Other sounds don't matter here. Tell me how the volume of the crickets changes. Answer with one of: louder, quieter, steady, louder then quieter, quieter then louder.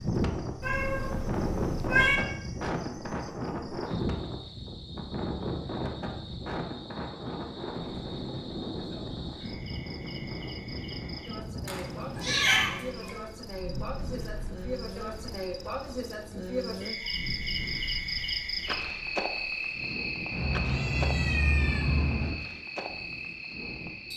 louder.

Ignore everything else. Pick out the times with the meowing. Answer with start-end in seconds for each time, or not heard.
0.6-2.1, 11.7-13.1, 20.3-22.4.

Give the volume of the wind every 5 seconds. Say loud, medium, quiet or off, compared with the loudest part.
loud, loud, medium, quiet, quiet.